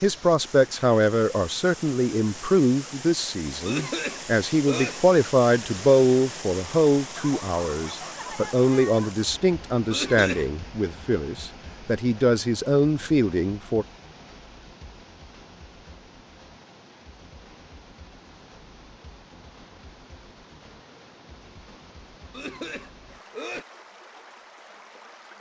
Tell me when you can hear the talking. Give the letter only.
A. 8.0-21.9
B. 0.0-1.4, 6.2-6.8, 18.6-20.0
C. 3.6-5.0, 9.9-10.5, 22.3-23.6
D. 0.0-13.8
D.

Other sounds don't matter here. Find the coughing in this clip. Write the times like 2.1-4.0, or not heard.
3.6-5.0, 9.9-10.5, 22.3-23.6.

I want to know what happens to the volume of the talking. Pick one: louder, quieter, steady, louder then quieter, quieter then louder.
steady.